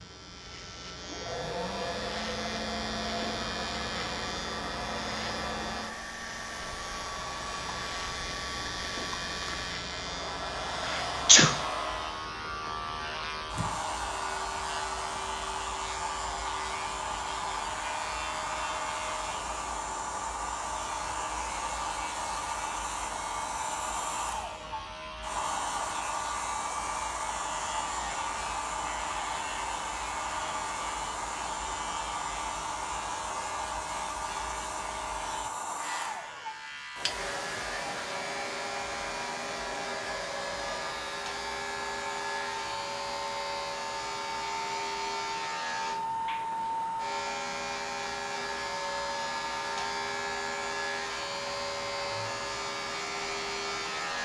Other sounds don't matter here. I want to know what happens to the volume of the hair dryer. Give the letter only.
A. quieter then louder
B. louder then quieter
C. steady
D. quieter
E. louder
C.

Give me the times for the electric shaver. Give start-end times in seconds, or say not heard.
0.0-54.2.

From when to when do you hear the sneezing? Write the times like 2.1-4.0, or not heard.
10.8-11.6.